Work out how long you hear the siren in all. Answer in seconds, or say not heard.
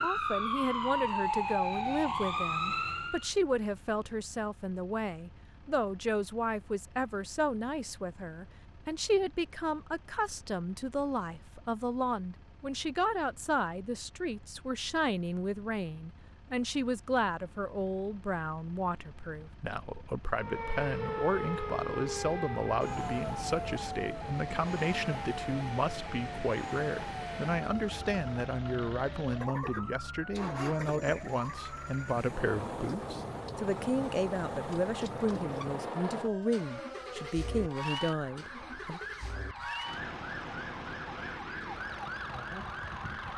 26 s.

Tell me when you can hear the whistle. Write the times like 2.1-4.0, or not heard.
not heard.